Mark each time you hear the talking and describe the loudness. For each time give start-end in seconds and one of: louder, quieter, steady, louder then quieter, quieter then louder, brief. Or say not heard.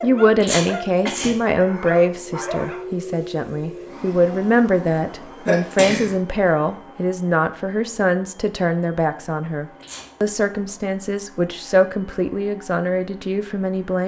0.0-14.0 steady.